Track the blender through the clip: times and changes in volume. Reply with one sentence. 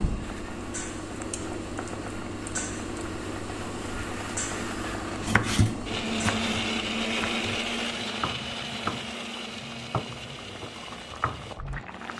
The blender can be heard from 0.1 to 12.1 s, getting louder then quieter.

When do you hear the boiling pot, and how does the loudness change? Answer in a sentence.
You can hear the boiling pot from 0.0 to 12.1 s, getting quieter.